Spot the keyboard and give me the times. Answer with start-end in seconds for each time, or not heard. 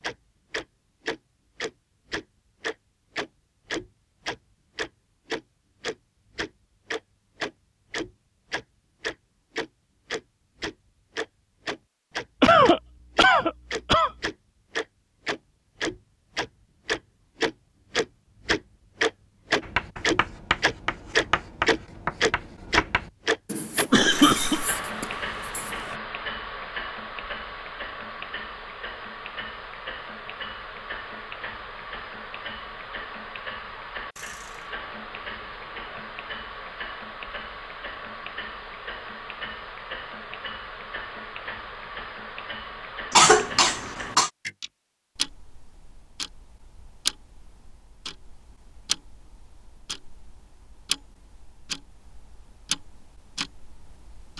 not heard.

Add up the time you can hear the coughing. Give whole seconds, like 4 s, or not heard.
4 s.